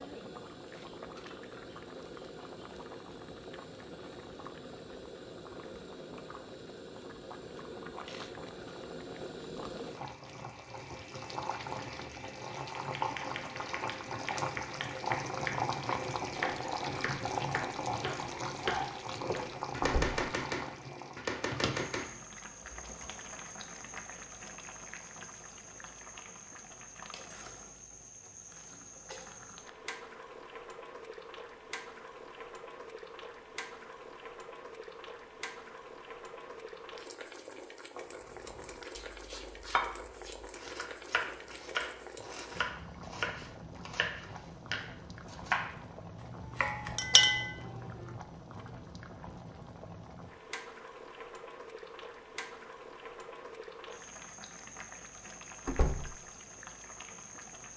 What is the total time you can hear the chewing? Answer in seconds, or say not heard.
not heard.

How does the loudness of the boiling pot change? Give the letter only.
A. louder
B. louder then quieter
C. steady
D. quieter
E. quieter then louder
B.